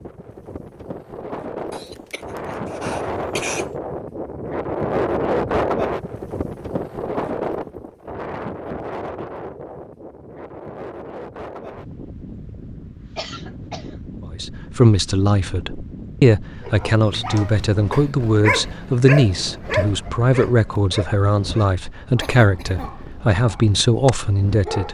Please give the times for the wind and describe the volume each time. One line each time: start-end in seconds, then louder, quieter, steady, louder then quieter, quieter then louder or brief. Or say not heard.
0.0-24.9 quieter.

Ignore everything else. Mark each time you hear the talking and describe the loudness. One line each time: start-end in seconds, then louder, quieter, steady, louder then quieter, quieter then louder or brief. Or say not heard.
14.3-24.9 steady.